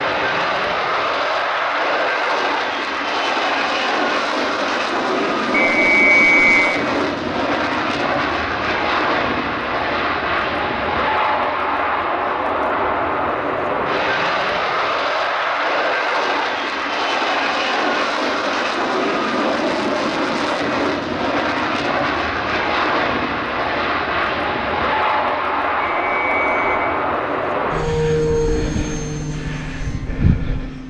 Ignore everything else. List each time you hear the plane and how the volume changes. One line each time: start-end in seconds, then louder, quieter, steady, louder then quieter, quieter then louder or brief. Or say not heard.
0.0-30.8 steady.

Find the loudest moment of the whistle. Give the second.
6 s.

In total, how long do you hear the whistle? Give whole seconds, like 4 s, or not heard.
2 s.